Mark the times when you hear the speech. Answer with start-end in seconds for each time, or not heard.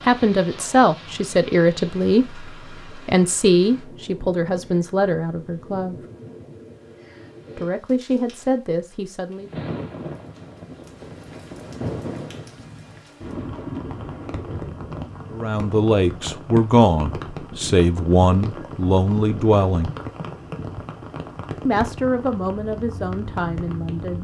0.0-6.0, 7.5-9.5, 15.3-19.9, 21.6-24.1.